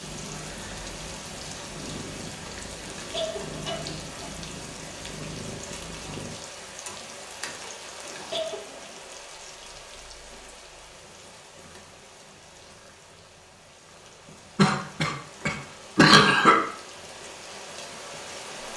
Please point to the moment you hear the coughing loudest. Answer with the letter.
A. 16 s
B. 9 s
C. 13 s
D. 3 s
A.